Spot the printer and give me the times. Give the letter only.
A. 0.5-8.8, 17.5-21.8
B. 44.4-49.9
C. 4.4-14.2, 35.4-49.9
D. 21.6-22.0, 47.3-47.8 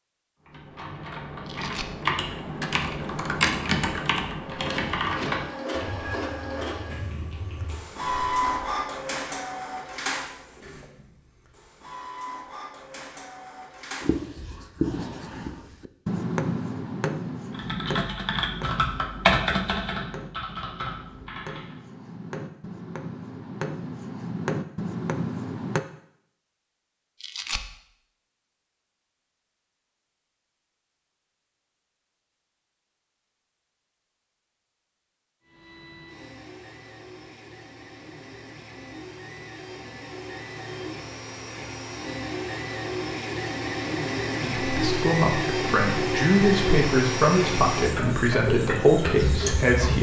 C.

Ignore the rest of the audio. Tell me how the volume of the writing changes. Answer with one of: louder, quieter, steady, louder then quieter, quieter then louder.
quieter then louder.